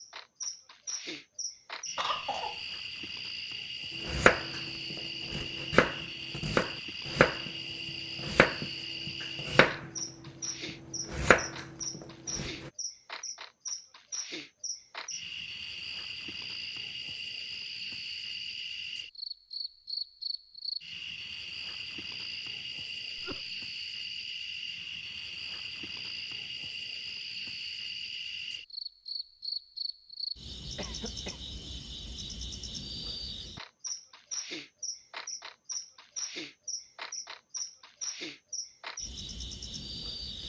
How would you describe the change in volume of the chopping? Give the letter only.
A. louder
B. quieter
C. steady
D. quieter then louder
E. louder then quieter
C.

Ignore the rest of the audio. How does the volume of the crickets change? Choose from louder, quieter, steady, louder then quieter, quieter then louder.
steady.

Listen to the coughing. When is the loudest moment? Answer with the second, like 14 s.
2 s.